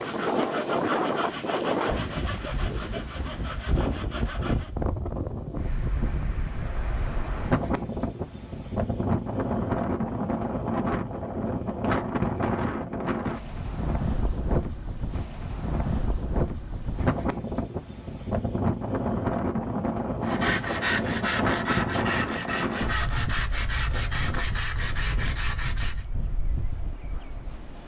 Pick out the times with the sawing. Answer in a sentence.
The sawing can be heard from 0.0 to 4.7 s and from 20.2 to 26.1 s.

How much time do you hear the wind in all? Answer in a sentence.
The wind can be heard for 28 seconds in total.